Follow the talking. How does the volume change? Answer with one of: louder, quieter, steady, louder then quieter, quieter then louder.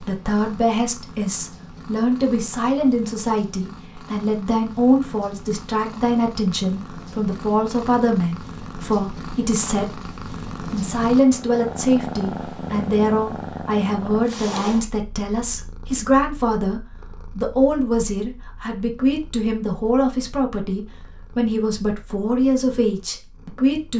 steady.